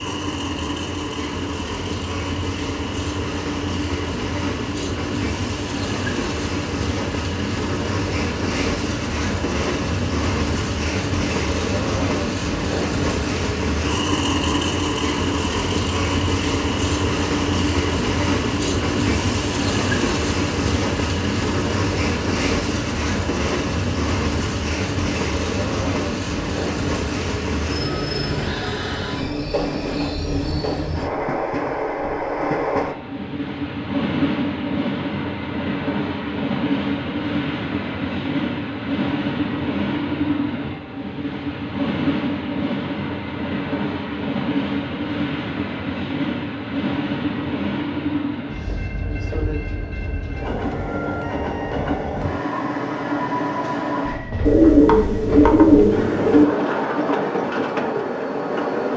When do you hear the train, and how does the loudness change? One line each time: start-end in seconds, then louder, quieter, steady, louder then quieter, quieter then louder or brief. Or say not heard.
0.0-58.9 steady.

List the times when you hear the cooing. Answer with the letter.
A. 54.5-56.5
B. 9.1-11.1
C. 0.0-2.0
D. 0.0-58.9
A.